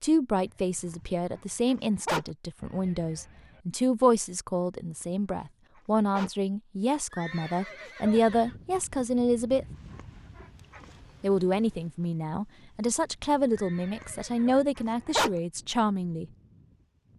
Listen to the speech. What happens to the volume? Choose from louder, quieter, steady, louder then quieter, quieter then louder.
steady.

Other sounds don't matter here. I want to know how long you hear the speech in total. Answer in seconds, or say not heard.
15 s.